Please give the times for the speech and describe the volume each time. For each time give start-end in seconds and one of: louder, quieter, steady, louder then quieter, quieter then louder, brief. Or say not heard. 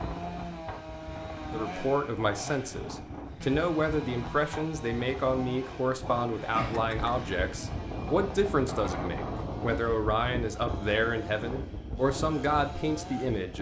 1.5-13.5 steady.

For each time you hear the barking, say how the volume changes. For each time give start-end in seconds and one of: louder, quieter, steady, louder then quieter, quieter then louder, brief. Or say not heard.
not heard.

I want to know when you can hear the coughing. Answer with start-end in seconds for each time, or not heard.
6.5-7.2.